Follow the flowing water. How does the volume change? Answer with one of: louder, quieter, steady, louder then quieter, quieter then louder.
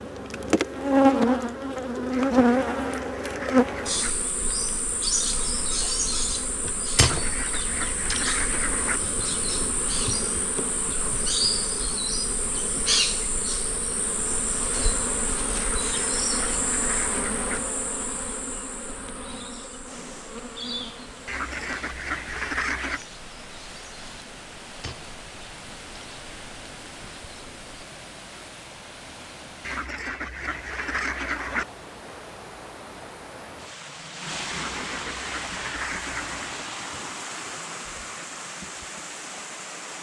louder.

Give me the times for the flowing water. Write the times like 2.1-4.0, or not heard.
19.8-39.9.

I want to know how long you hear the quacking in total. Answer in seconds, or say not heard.
12 s.